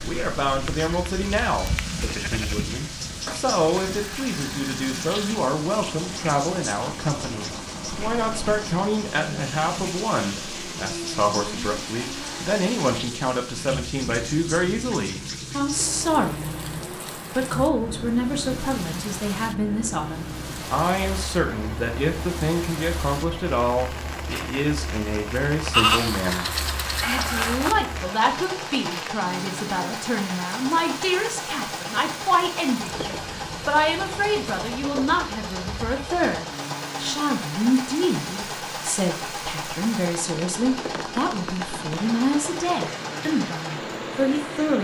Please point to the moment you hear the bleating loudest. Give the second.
26 s.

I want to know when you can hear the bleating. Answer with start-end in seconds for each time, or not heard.
0.7-2.8, 25.7-27.8.